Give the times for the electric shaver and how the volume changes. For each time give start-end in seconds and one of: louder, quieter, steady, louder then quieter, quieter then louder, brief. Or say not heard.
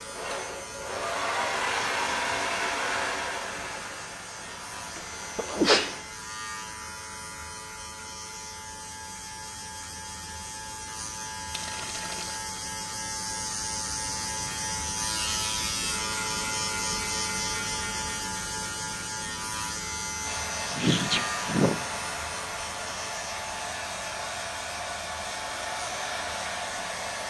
0.0-27.2 louder then quieter.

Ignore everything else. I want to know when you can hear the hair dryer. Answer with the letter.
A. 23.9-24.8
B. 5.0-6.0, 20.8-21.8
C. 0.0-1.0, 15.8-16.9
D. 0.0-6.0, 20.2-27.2
D.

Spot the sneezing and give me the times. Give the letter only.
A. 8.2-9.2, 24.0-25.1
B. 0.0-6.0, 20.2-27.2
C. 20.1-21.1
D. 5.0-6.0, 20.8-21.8
D.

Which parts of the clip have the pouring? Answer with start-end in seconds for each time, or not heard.
11.5-12.4.